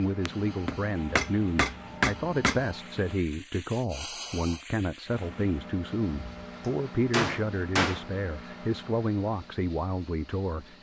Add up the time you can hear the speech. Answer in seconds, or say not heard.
11 s.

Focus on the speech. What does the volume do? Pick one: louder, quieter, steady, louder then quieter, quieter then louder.
steady.